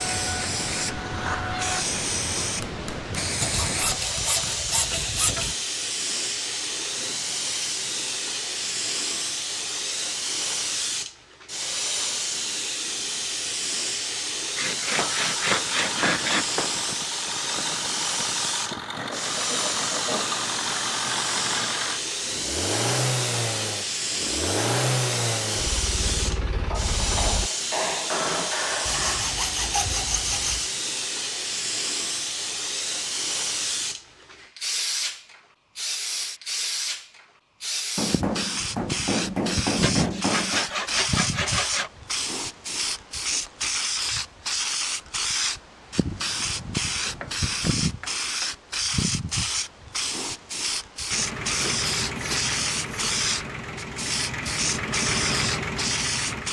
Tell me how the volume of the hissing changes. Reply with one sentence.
The loudness of the hissing stays about the same.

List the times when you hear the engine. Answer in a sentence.
You can hear the engine from 0.0 to 1.9 s, from 15.2 to 27.5 s and from 51.1 to 56.4 s.